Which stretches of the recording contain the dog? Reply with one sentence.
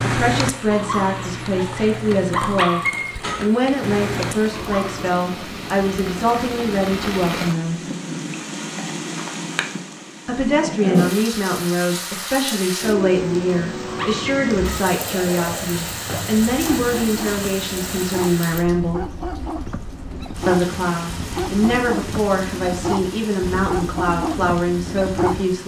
You can hear the dog from 0.0 to 5.1 s and from 13.8 to 25.4 s.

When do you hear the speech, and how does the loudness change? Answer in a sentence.
You can hear the speech from 0.0 to 7.8 s, at a steady volume; from 10.2 to 19.1 s, at a steady volume; and from 20.4 to 25.6 s, at a steady volume.